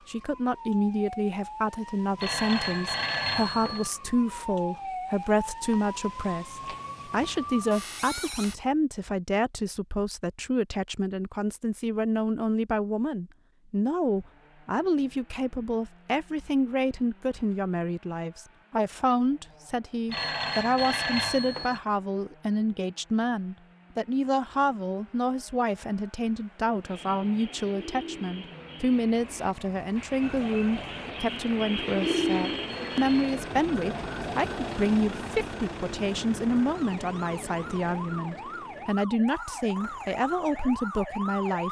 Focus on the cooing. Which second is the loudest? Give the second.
32 s.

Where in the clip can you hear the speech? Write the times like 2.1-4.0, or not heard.
0.1-41.6.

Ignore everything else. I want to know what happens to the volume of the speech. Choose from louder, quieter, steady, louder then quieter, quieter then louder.
steady.